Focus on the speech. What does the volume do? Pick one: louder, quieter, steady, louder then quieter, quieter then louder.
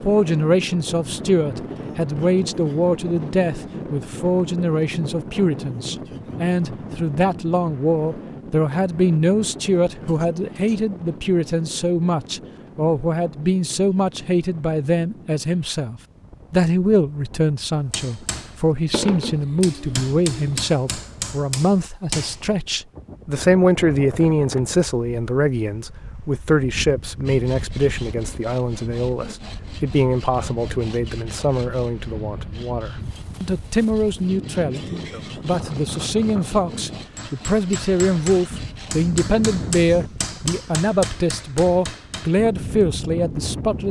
steady.